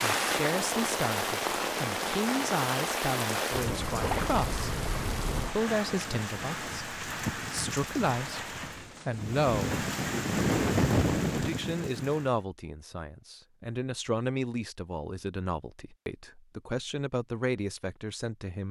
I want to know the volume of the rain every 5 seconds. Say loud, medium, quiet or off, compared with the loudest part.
loud, medium, loud, off.